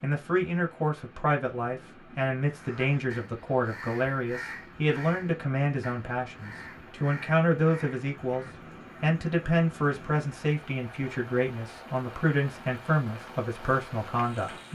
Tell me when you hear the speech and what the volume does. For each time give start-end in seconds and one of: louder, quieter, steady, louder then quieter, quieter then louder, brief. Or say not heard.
0.0-14.7 steady.